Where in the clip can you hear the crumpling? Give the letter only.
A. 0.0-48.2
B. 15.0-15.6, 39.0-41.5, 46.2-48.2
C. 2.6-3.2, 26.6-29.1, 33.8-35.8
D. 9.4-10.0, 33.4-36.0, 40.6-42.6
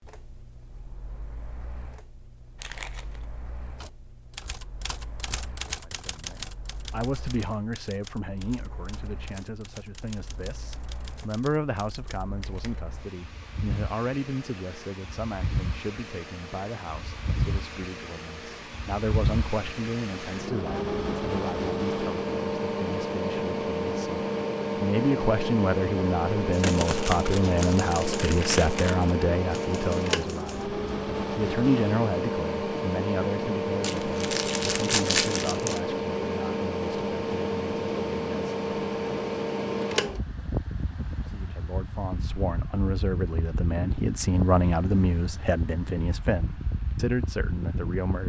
C.